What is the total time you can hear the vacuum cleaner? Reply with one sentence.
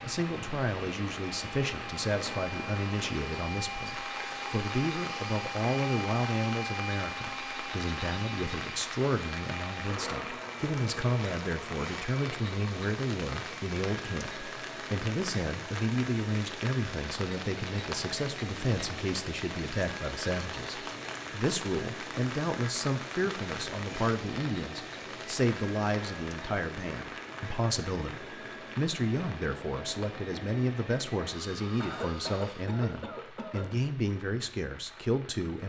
The vacuum cleaner can be heard for 33 seconds in total.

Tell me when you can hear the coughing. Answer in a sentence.
You can hear the coughing from 31.8 to 33.7 s.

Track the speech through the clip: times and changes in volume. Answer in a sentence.
You can hear the speech from 0.0 to 35.6 s, at a steady volume.